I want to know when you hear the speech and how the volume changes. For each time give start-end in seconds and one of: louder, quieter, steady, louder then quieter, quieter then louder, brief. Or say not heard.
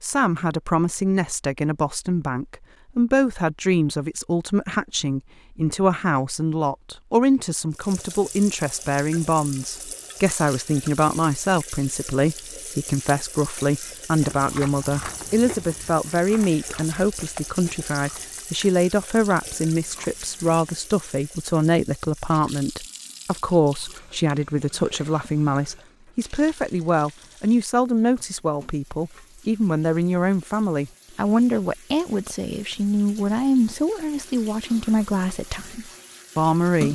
0.0-36.9 steady.